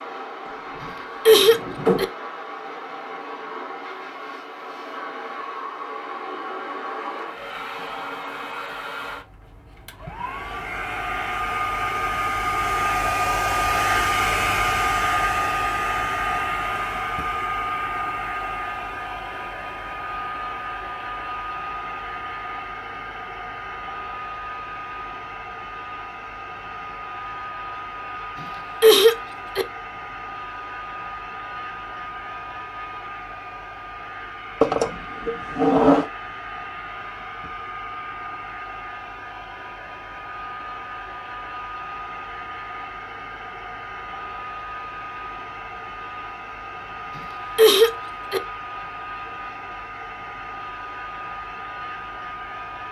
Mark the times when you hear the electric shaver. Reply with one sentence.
You can't hear the electric shaver here.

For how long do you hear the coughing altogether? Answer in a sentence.
The coughing can be heard for 4 seconds in total.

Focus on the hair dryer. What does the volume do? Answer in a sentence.
The loudness of the hair dryer goes up, then down.